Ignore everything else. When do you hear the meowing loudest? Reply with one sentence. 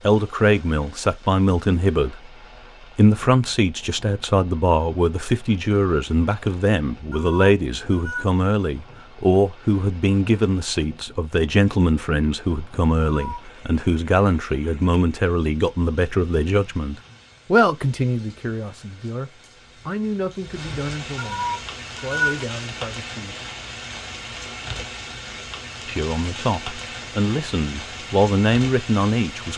The loudest moment of the meowing is at 22 seconds.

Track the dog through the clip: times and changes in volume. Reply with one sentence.
You can't hear the dog here.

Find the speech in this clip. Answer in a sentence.
You can hear the speech from 0.1 to 2.3 s, from 3.0 to 23.4 s and from 25.9 to 29.5 s.